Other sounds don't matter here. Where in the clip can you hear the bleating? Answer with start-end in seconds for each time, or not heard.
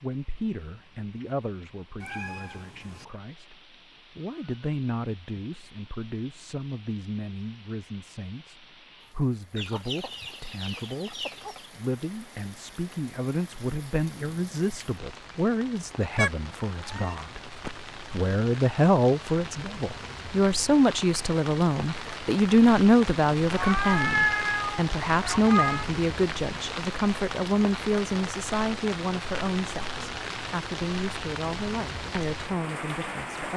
not heard.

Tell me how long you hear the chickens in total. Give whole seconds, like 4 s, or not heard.
2 s.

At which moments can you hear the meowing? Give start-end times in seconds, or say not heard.
2.0-3.0, 16.1-17.7, 23.6-25.9.